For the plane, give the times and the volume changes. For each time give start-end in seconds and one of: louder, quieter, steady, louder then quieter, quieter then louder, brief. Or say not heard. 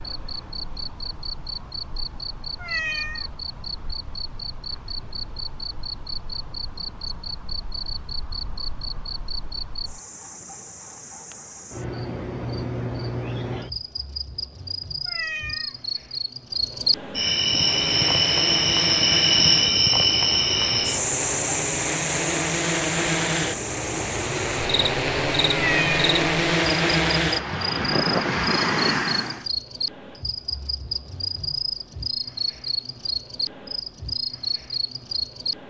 17.4-29.4 louder.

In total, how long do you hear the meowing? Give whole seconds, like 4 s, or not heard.
2 s.